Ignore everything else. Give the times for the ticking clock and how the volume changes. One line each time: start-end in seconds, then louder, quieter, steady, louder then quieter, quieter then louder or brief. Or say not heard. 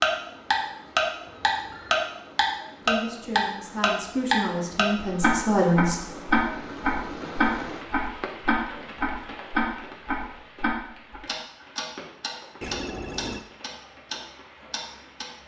0.0-15.2 quieter.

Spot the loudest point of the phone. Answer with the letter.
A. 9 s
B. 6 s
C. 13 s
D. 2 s
C.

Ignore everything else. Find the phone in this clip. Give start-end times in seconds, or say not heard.
1.2-2.0, 12.6-13.4.